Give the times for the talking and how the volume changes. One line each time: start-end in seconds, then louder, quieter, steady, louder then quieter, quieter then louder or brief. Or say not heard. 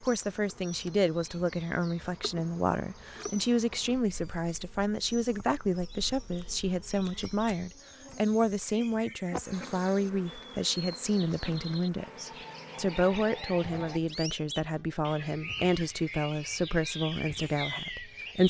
0.0-18.4 steady.